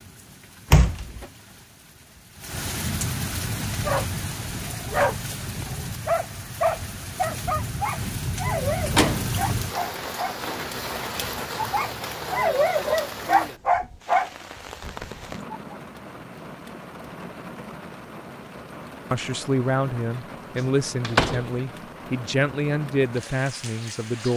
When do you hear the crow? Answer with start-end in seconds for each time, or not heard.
not heard.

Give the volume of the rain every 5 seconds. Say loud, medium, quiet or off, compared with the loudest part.
loud, loud, loud, medium, medium.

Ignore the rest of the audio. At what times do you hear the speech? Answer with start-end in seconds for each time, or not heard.
19.1-24.3.